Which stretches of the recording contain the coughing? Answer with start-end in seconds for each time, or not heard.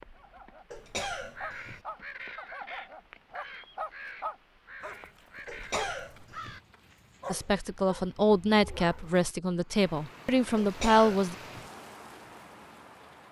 0.7-1.8, 5.5-6.6, 10.6-11.7.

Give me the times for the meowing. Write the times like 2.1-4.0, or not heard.
not heard.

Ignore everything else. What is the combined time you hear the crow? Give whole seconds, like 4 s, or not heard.
5 s.